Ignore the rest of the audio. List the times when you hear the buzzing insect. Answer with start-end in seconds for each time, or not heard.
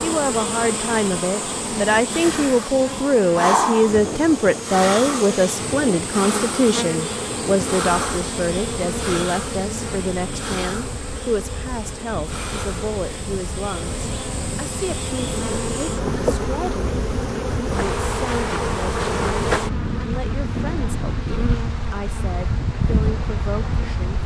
0.0-24.2.